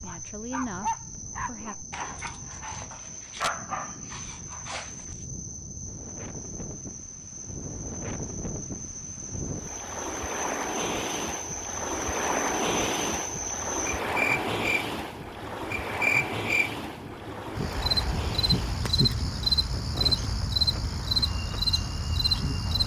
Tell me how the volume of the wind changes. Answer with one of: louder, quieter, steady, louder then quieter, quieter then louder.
louder then quieter.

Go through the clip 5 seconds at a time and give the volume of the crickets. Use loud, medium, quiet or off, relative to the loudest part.
quiet, quiet, medium, loud, loud.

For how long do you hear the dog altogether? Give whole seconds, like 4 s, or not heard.
5 s.